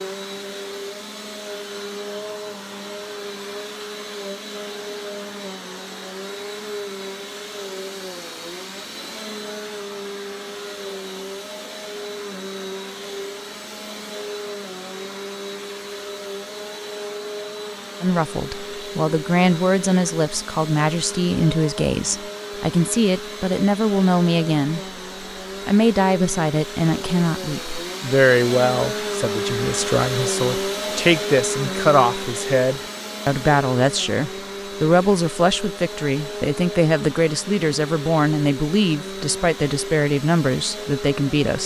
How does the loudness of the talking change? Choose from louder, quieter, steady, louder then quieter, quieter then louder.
steady.